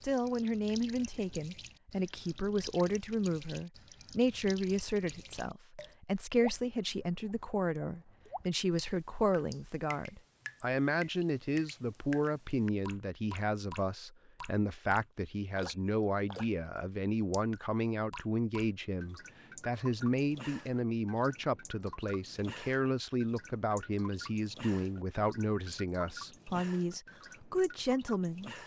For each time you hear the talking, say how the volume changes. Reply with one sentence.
The talking can be heard from 0.0 to 28.5 s, at a steady volume.